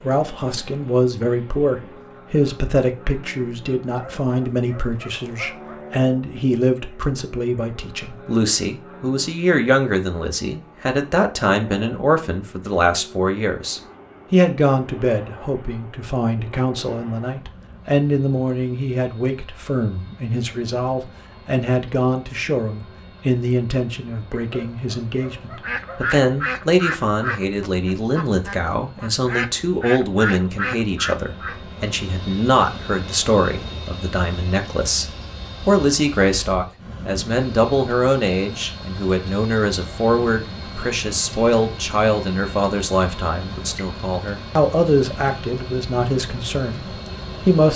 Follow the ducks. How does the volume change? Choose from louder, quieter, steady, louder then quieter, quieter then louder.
quieter then louder.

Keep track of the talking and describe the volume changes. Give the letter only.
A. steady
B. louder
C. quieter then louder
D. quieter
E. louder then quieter
A.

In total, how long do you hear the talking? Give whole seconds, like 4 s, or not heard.
47 s.